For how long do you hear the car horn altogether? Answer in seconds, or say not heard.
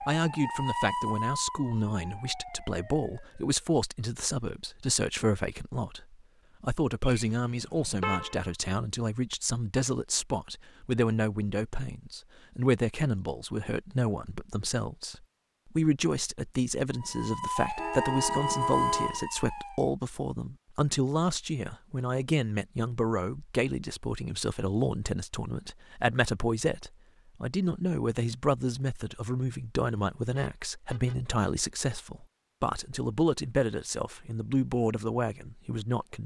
4 s.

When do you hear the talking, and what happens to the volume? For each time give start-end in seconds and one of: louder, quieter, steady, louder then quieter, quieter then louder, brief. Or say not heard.
0.0-36.2 steady.